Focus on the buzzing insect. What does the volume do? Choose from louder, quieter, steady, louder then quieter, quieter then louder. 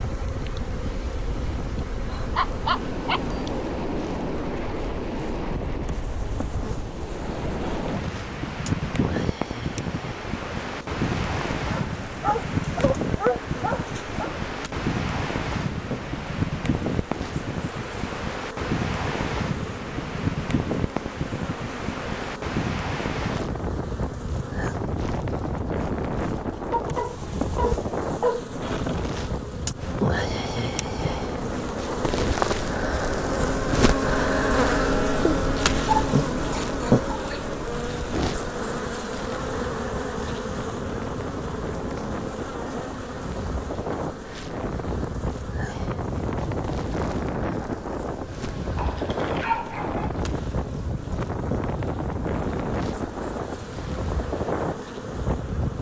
louder then quieter.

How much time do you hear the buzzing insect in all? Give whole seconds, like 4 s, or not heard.
56 s.